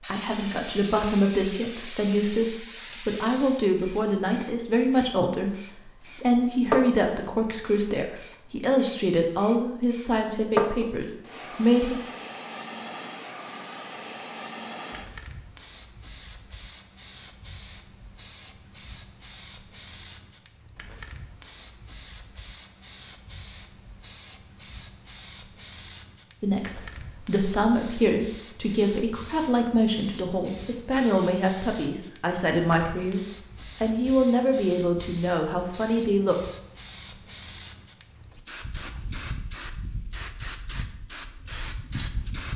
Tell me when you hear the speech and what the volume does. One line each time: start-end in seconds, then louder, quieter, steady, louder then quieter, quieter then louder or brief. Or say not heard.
0.1-11.9 steady
26.4-36.4 steady.